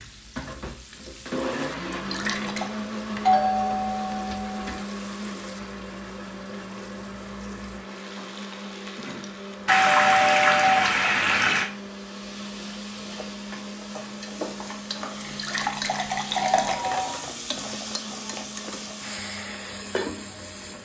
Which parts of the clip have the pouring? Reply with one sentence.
The pouring can be heard from 1.9 to 2.7 s, from 9.7 to 11.7 s and from 15.2 to 16.8 s.